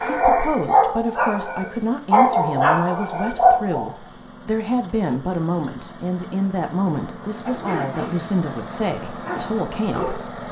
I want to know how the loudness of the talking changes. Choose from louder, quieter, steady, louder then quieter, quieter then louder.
steady.